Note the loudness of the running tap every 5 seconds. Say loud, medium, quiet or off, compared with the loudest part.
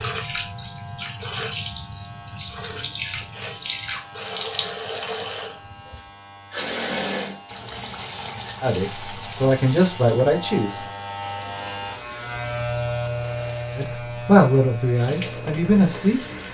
loud, loud, quiet, medium.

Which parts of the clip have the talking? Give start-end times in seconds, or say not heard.
8.6-10.8, 13.8-16.2.